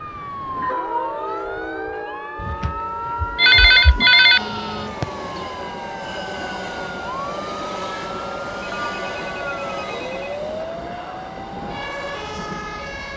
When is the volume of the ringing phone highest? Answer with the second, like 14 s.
4 s.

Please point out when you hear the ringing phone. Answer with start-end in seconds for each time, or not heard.
2.4-4.4, 8.6-10.4.